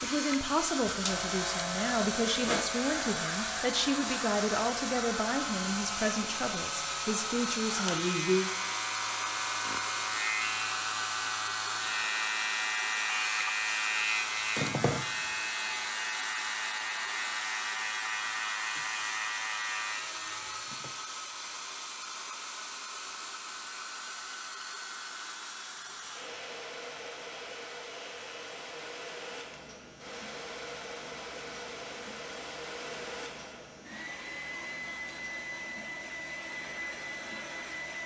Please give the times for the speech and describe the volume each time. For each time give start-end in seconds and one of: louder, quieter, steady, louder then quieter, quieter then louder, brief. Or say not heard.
0.0-8.5 steady.